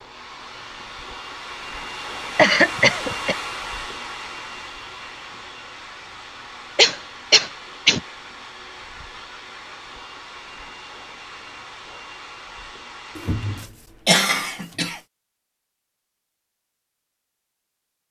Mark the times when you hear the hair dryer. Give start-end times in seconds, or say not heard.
0.0-13.7.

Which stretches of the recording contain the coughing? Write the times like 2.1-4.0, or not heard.
2.4-3.4, 6.8-8.0, 13.2-15.0.